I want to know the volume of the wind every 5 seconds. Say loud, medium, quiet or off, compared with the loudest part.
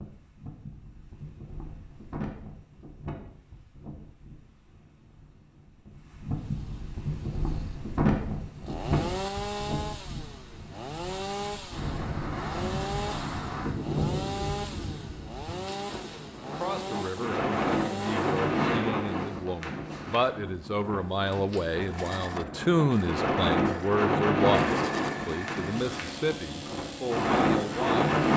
quiet, medium, medium, loud, loud, loud.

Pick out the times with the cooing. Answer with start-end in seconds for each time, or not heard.
not heard.